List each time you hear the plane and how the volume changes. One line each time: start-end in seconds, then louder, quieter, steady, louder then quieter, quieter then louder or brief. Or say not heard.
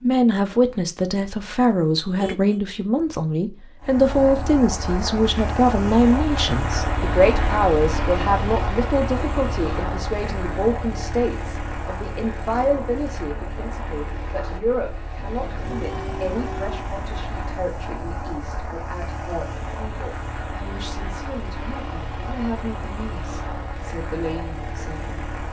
3.8-25.4 quieter.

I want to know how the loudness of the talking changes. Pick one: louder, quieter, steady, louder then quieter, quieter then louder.
quieter.